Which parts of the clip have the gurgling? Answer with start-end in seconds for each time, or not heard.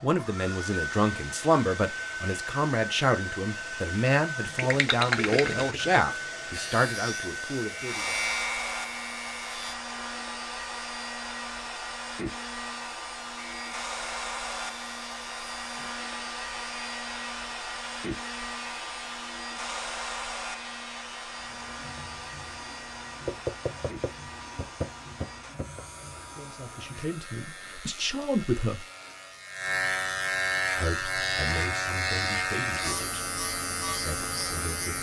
4.5-6.0.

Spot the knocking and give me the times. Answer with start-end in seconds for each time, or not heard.
23.2-25.9.